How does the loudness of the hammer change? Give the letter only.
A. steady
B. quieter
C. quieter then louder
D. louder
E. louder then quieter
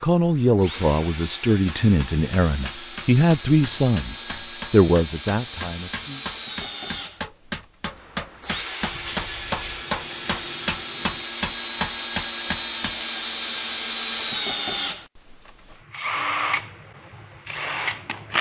D.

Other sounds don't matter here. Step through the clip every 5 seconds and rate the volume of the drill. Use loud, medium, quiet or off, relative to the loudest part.
medium, medium, loud, loud.